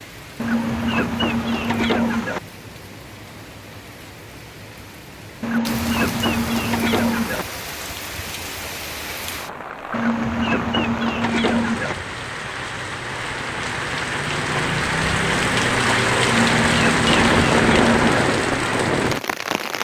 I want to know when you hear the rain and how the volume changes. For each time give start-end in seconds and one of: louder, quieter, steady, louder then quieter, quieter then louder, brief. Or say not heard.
0.0-19.7 louder.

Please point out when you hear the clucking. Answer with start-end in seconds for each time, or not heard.
0.4-2.4, 5.4-7.5, 9.9-11.9, 16.2-18.1.